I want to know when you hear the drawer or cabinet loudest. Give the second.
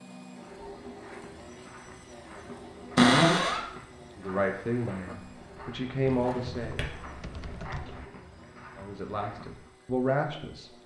3 s.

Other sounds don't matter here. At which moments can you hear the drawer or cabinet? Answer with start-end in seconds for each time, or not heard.
3.0-3.6, 6.1-7.2.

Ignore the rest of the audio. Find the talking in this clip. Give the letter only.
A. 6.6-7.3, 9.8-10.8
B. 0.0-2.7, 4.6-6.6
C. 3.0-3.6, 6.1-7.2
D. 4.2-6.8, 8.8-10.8
D.